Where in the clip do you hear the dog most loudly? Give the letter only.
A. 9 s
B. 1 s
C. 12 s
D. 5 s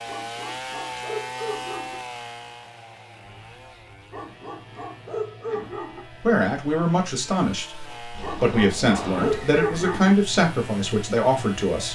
A.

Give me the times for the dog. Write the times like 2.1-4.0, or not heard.
0.1-2.0, 4.1-6.0, 8.2-10.2.